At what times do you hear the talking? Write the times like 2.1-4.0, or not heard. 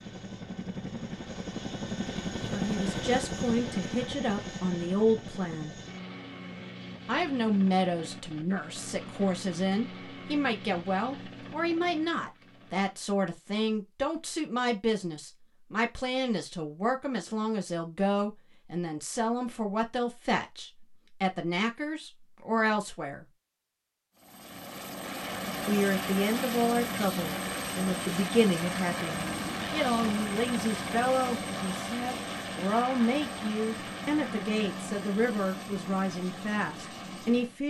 2.5-5.8, 7.0-23.2, 25.6-37.6.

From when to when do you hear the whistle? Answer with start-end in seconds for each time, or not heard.
not heard.